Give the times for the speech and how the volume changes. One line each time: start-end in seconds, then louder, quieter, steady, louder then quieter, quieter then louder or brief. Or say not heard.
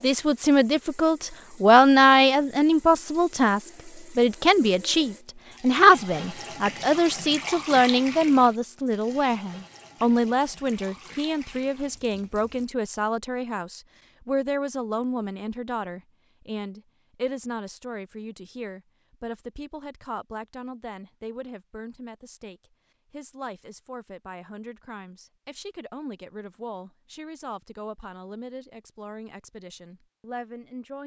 0.0-31.0 quieter.